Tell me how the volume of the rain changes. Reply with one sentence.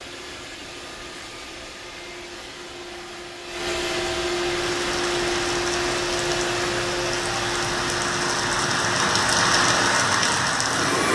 The loudness of the rain goes up.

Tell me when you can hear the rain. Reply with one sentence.
You can hear the rain from 4.5 to 11.0 s.